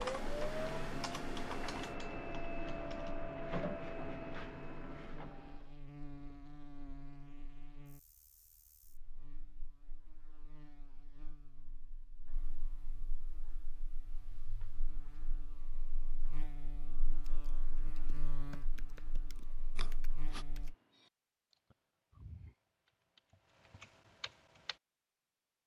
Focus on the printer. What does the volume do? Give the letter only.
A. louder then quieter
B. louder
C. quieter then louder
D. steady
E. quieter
E.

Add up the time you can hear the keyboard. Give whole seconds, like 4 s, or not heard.
10 s.